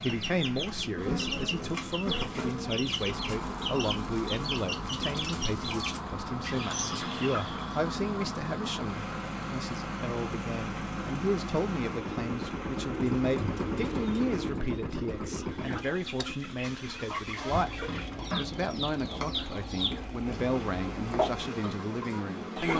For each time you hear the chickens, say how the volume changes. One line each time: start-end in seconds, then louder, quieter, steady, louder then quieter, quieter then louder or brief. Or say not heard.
0.0-7.9 steady
15.2-22.7 louder.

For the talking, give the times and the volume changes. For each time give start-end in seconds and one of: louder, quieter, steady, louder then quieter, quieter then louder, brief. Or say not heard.
0.0-22.7 steady.